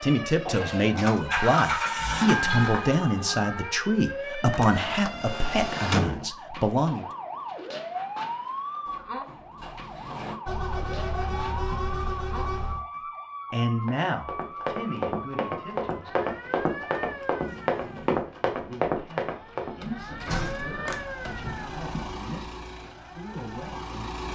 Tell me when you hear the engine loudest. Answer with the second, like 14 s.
2 s.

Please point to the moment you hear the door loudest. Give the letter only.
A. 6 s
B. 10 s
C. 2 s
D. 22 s
A.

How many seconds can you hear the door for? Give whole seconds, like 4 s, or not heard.
6 s.